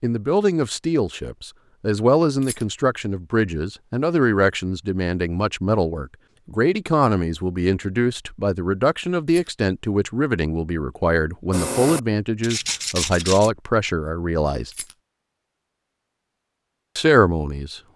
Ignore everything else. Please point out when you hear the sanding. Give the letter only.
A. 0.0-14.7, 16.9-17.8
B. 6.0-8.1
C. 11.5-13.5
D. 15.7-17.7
C.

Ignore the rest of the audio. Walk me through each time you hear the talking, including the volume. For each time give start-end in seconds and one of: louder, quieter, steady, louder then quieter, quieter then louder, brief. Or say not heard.
0.0-14.7 steady
16.9-17.8 brief.